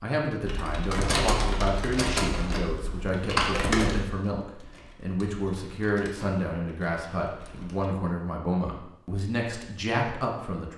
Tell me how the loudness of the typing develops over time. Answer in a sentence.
The loudness of the typing goes down.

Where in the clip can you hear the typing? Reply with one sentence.
The typing can be heard from 0.5 to 7.9 s.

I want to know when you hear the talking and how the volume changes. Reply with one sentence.
The talking can be heard from 0.0 to 10.7 s, at a steady volume.